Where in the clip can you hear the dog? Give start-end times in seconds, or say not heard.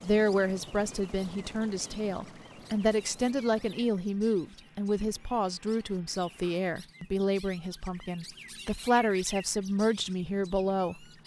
not heard.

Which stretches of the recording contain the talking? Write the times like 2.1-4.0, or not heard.
0.0-11.1.